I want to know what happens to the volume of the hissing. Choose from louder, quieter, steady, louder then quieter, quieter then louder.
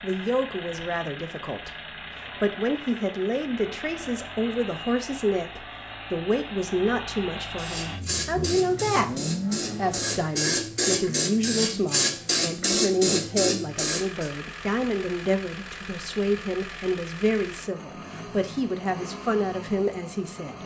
louder.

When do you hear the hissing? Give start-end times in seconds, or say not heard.
7.5-14.3.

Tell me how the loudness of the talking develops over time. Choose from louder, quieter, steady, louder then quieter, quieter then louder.
steady.